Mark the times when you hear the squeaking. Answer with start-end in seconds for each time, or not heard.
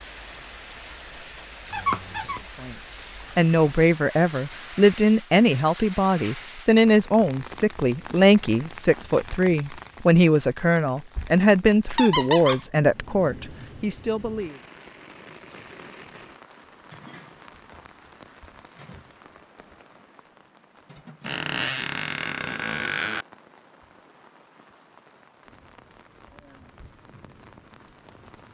1.7-2.4, 11.9-12.7, 21.2-23.2.